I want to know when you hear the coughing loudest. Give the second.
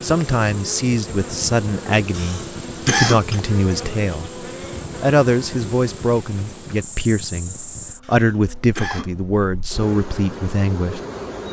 3 s.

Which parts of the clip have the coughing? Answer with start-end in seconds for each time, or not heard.
2.1-3.4, 8.0-9.1.